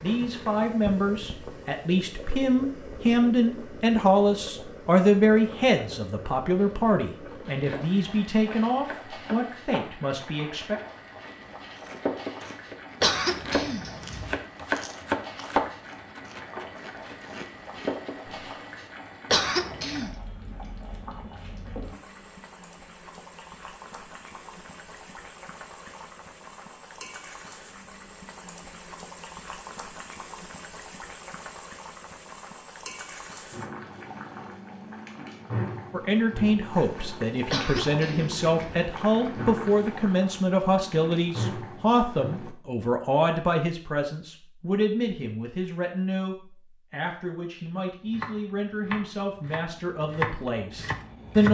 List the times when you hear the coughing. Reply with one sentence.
You can hear the coughing from 13.0 to 14.4 s, from 19.3 to 20.1 s and from 37.5 to 38.9 s.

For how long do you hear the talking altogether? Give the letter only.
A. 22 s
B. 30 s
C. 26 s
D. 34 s
C.